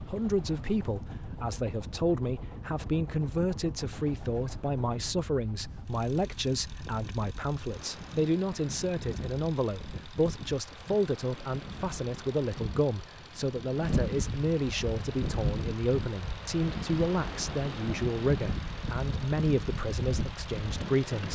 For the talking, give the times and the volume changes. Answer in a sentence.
The talking can be heard from 0.1 to 21.3 s, at a steady volume.